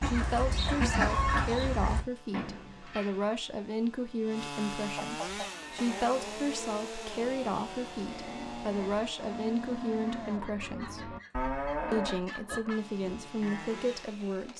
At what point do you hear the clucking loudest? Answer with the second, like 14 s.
1 s.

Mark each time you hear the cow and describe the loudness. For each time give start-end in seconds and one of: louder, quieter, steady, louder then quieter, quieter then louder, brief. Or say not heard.
5.3-14.1 louder then quieter.